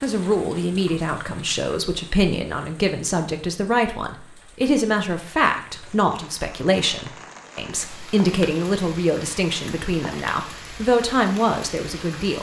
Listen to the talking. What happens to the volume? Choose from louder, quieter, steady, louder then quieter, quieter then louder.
steady.